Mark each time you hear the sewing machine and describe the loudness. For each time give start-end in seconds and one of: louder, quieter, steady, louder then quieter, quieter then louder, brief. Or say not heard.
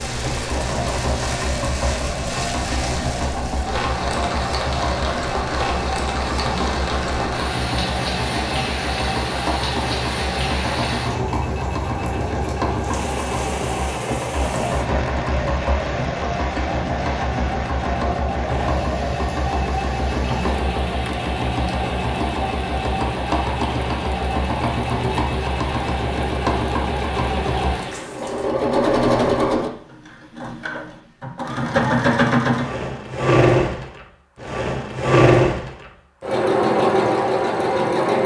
0.0-38.2 louder.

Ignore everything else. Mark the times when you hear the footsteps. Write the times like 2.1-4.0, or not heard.
not heard.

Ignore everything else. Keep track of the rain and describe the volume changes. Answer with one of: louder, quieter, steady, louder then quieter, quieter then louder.
quieter.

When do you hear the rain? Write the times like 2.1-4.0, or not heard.
0.0-28.5.